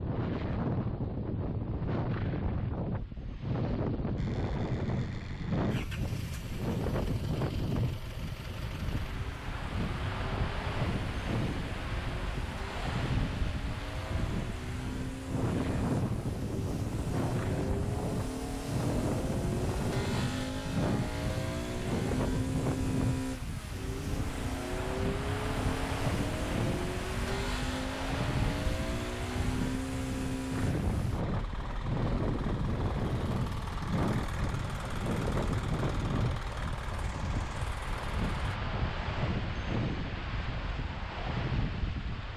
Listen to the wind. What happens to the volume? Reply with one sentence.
The loudness of the wind stays about the same.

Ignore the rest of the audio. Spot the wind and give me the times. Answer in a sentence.
The wind can be heard from 0.0 to 42.3 s.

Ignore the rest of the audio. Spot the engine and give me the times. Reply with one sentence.
You can hear the engine from 4.2 to 38.6 s.